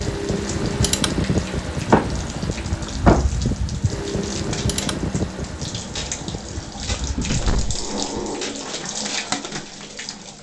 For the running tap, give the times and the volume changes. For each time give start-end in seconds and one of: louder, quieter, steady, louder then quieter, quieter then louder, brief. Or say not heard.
0.0-10.3 louder.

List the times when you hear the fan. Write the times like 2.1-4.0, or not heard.
0.0-7.9.